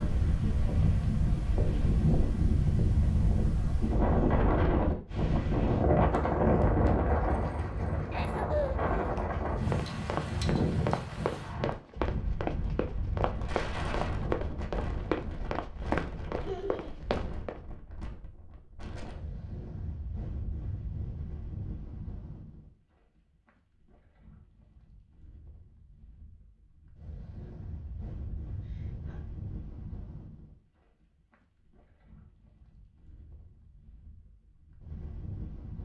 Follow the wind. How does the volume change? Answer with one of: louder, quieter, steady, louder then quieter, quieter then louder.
quieter.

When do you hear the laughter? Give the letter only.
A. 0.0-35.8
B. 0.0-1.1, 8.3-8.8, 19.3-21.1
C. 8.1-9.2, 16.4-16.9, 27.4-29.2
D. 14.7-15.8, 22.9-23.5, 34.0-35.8
C.